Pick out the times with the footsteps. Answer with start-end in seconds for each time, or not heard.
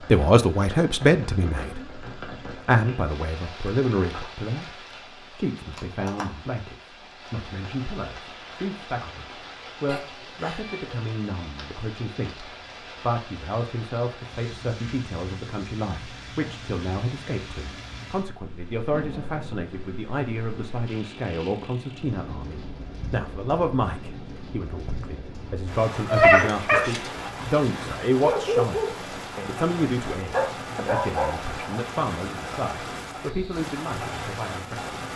not heard.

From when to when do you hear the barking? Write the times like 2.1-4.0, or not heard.
26.1-31.6.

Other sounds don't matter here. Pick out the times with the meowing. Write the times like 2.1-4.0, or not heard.
9.8-11.0.